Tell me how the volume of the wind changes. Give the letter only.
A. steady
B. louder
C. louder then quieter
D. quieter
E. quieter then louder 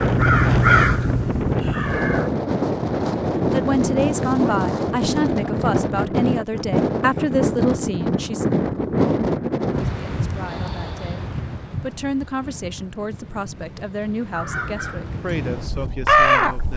D.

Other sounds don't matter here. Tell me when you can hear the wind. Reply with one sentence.
The wind can be heard from 0.0 to 16.7 s.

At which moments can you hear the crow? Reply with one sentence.
The crow can be heard from 0.0 to 2.3 s and from 14.3 to 16.7 s.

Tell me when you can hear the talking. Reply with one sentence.
You can hear the talking from 3.5 to 8.4 s and from 9.8 to 16.7 s.